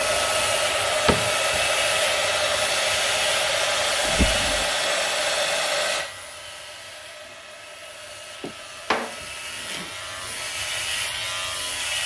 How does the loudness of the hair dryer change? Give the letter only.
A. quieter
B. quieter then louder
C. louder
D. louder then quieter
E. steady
A.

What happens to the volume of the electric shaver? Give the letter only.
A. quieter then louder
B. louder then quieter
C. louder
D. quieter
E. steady
A.